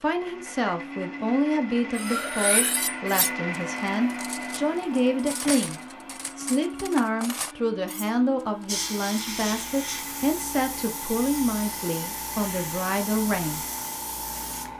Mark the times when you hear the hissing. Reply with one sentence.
You can hear the hissing from 8.7 to 14.7 s.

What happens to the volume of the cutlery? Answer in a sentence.
The loudness of the cutlery goes down, then up.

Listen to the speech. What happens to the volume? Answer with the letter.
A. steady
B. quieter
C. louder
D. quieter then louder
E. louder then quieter
A.